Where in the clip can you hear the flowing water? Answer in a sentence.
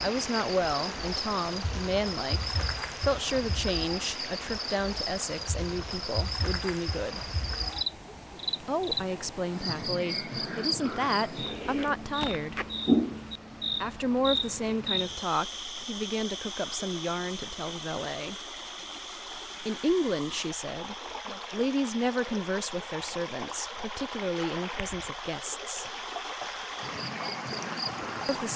The flowing water can be heard from 0.0 to 28.5 s.